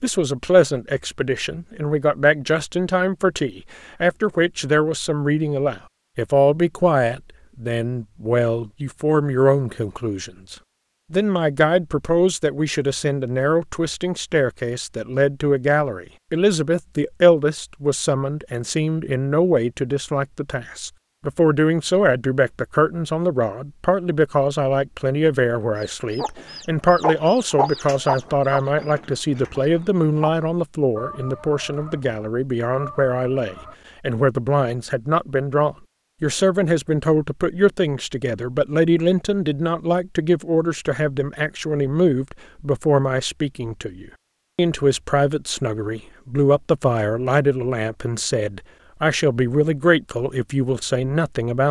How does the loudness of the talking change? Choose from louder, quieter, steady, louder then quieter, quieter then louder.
steady.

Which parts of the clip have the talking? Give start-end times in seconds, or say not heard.
0.0-51.6.